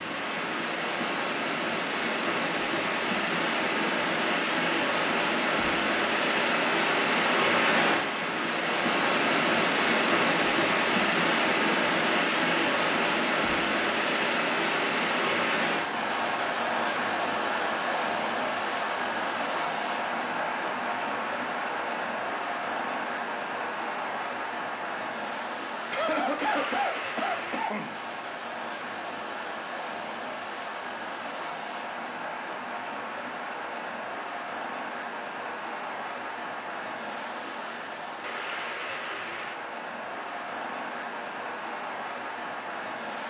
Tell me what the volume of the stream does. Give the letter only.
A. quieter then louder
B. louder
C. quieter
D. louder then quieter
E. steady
C.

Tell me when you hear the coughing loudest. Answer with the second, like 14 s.
26 s.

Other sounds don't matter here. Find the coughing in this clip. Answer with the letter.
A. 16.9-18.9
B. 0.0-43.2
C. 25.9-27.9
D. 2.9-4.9
C.